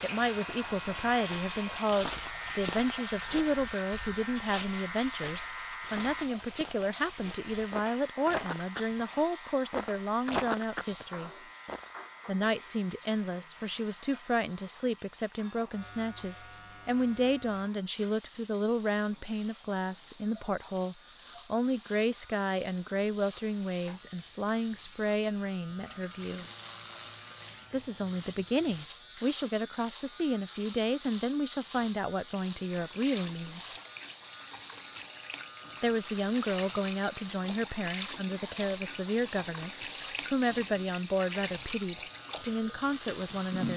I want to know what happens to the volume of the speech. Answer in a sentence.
The loudness of the speech stays about the same.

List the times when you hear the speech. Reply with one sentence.
You can hear the speech from 0.0 to 11.3 s, from 12.2 to 26.4 s, from 27.7 to 33.7 s and from 35.8 to 43.7 s.